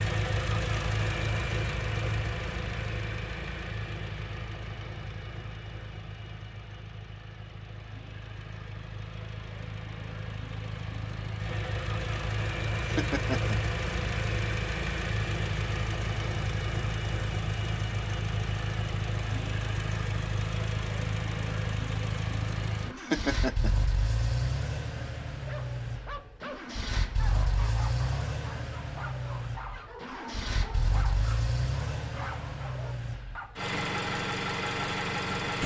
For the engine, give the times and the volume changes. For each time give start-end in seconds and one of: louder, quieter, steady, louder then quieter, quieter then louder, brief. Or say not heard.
0.0-35.6 steady.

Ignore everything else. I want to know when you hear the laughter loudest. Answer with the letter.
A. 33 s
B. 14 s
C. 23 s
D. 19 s
C.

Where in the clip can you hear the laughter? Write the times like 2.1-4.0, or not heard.
12.8-13.6, 22.9-23.8.